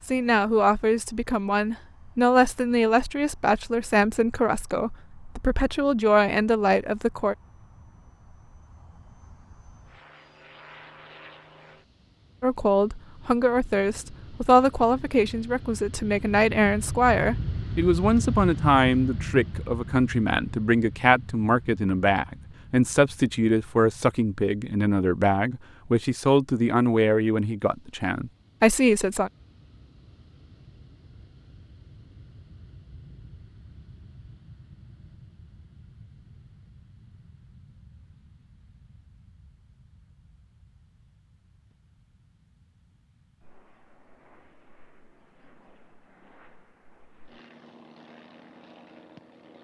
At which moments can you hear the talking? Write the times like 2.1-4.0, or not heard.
0.1-7.3, 12.4-29.3.